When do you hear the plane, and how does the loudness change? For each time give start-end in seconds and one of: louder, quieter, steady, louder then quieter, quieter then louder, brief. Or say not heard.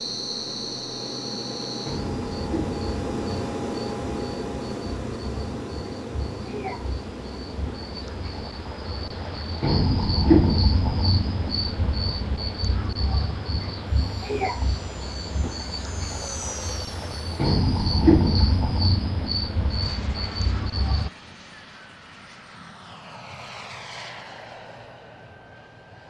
0.0-26.0 quieter.